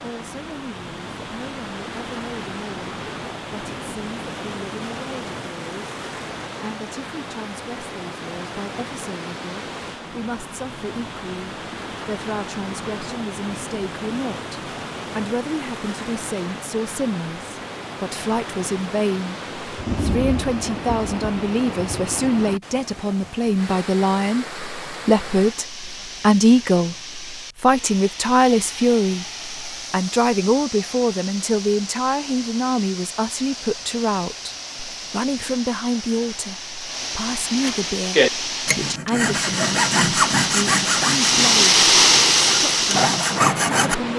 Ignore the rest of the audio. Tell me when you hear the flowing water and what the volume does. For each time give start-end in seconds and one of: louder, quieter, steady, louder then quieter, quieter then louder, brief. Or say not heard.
0.0-44.1 louder.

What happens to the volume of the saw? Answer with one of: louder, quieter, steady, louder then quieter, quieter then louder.
quieter then louder.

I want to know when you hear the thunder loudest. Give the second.
20 s.